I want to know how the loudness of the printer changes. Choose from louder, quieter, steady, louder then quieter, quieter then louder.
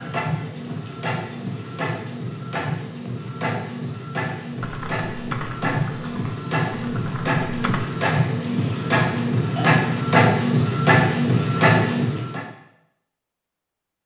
louder.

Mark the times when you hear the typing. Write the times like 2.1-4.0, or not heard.
4.6-7.8.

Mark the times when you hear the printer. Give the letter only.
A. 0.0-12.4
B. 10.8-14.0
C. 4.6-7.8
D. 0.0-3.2
A.